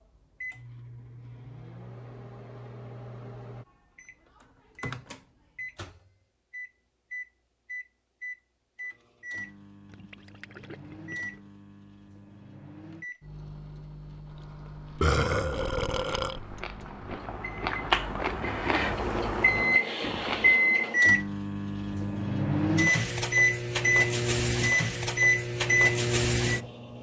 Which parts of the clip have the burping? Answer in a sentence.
You can hear the burping from 15.0 to 16.4 s.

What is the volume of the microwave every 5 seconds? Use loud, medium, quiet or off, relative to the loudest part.
quiet, quiet, quiet, medium, loud, loud.